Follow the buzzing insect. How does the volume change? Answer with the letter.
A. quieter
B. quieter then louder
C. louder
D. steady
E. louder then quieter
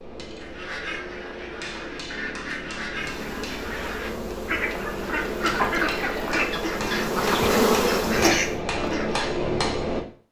C.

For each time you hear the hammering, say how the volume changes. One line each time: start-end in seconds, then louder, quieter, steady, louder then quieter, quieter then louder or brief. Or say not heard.
0.0-10.2 louder.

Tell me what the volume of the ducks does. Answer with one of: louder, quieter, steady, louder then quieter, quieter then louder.
louder.